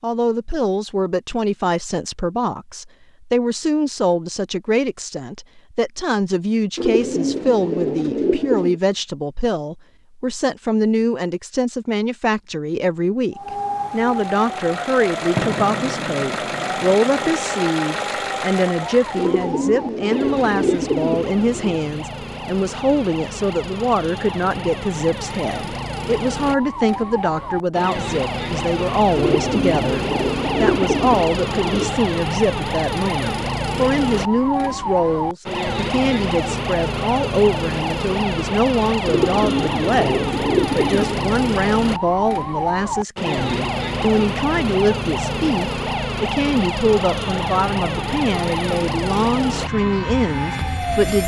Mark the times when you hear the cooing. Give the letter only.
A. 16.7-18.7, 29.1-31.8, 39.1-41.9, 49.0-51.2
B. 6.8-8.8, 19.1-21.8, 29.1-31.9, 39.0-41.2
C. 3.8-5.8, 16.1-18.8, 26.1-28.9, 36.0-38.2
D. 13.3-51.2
B.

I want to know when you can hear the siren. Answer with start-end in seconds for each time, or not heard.
13.3-51.2.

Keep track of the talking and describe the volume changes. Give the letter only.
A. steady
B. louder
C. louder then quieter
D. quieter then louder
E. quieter
A.